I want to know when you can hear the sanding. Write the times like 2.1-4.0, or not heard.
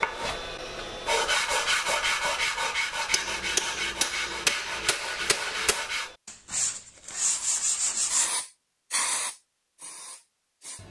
0.0-8.3.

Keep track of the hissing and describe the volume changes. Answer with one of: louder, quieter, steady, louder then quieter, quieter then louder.
louder then quieter.